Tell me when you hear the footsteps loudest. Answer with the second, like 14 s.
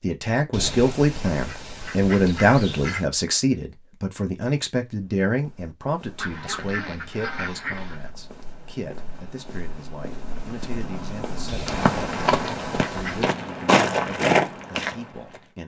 14 s.